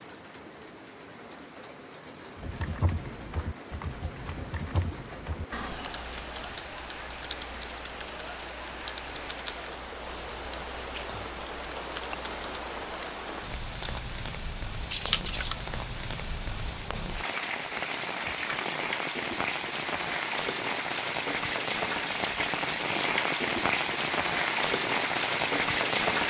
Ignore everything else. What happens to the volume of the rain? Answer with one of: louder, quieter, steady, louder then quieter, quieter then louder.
louder.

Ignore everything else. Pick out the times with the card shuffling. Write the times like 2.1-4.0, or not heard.
14.9-15.6.